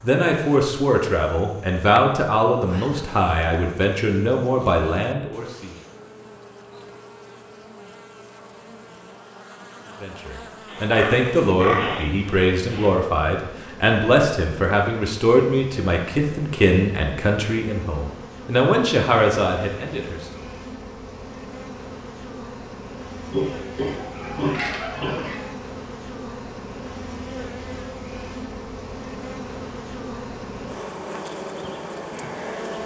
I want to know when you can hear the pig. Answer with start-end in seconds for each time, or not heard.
10.7-12.9, 23.3-25.4.